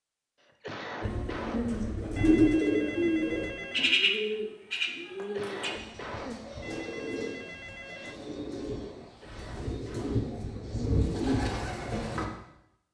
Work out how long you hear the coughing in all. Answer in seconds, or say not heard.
4 s.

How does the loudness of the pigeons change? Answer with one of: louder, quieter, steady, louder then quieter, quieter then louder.
quieter then louder.